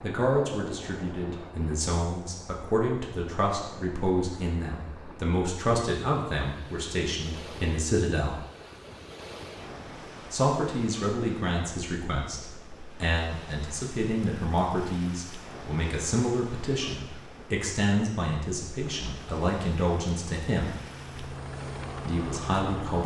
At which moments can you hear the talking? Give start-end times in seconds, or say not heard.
0.0-8.4, 10.3-20.8, 22.1-23.0.